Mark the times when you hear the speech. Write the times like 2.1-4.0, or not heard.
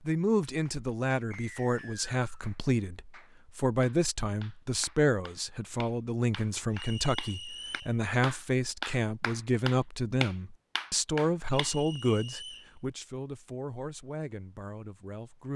0.0-15.5.